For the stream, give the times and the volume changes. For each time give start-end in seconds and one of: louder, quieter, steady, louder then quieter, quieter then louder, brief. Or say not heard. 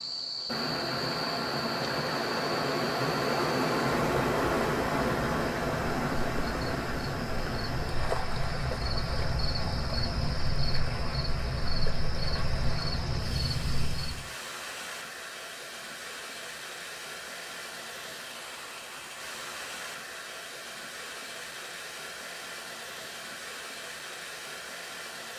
0.0-25.3 quieter.